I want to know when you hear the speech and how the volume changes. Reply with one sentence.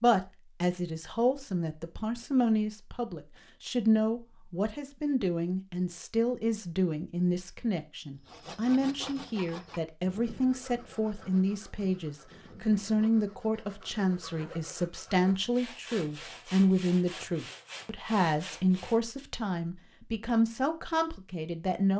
The speech can be heard from 0.0 to 21.9 s, at a steady volume.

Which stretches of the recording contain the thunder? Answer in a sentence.
You can't hear the thunder here.